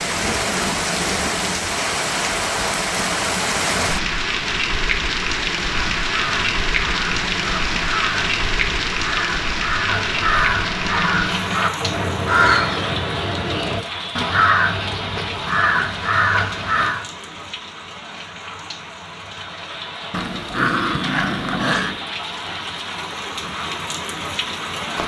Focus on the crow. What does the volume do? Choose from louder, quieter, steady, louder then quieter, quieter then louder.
louder.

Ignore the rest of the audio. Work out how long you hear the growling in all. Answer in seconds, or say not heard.
2 s.